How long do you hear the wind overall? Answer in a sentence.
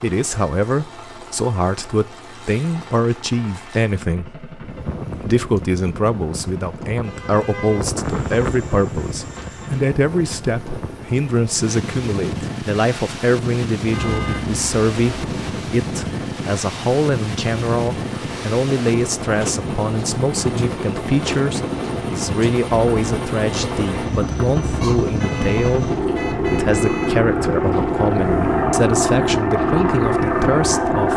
You can hear the wind for 26 seconds altogether.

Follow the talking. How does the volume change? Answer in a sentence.
The volume of the talking stays about the same.